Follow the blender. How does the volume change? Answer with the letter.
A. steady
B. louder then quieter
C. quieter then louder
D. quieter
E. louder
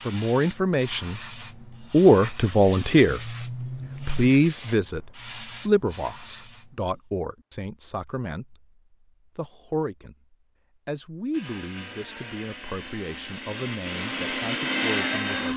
E.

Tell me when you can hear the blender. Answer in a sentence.
The blender can be heard from 11.3 to 15.5 s.